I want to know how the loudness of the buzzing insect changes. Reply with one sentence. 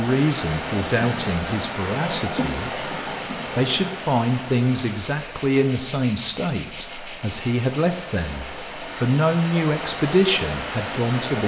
The loudness of the buzzing insect goes up, then down.